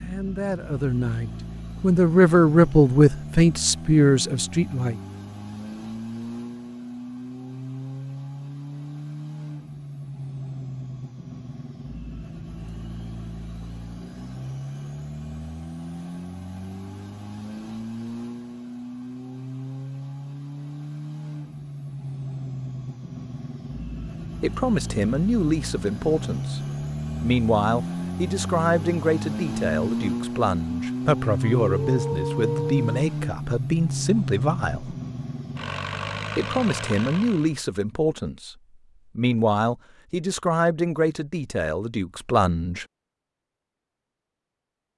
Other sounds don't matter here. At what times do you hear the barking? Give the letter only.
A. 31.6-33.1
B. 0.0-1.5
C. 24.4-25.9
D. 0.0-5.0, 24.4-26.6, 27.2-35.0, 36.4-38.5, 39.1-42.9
A.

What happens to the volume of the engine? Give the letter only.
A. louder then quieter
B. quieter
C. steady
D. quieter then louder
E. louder
E.